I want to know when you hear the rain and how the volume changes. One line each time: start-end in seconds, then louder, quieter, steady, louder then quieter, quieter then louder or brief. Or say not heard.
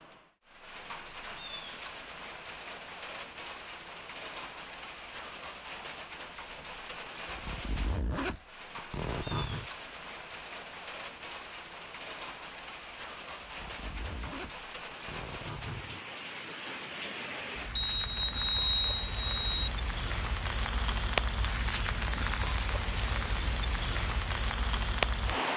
0.0-25.5 louder.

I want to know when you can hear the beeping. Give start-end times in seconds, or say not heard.
17.8-19.7.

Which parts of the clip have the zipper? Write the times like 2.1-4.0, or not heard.
7.2-9.7, 13.4-16.0.